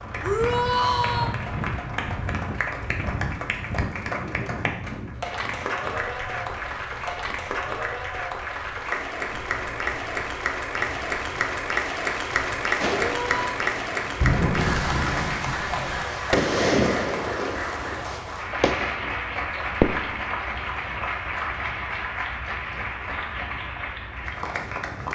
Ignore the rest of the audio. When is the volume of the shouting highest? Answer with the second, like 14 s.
1 s.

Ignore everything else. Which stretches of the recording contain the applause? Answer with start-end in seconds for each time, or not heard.
0.0-25.1.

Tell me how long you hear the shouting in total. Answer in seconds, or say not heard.
2 s.